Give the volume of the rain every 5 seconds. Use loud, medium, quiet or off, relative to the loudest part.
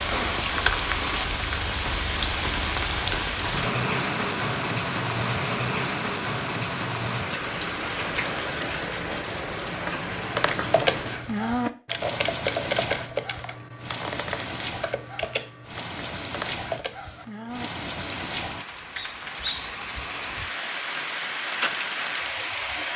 loud, loud, medium, medium, loud.